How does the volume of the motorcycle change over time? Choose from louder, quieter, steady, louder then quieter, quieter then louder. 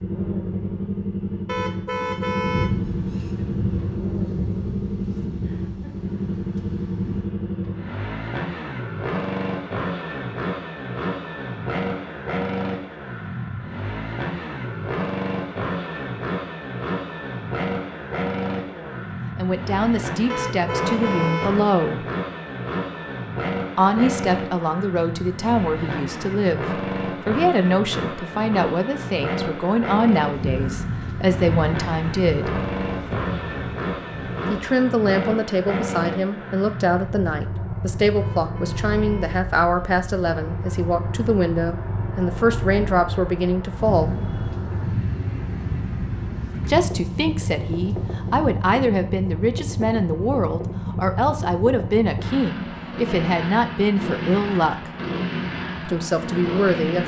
steady.